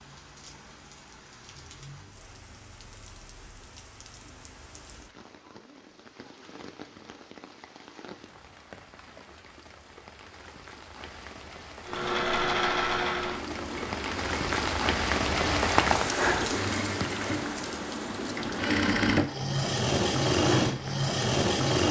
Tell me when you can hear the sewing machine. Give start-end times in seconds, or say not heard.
11.8-21.8.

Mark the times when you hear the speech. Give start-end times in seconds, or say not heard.
not heard.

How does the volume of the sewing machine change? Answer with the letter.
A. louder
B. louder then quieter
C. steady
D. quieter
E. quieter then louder
E.